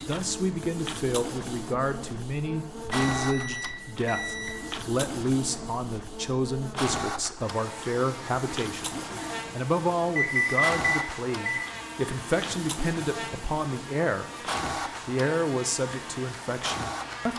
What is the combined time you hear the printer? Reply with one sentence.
You can hear the printer for 17 seconds altogether.